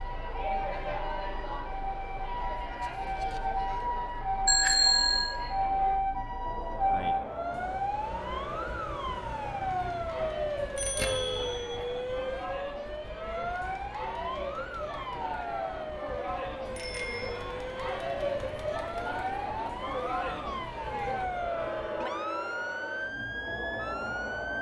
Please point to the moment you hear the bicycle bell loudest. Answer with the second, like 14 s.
5 s.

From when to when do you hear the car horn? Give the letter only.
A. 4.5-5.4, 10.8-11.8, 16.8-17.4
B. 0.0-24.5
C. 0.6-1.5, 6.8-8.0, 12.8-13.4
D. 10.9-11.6
D.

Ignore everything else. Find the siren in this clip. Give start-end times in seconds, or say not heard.
0.0-24.5.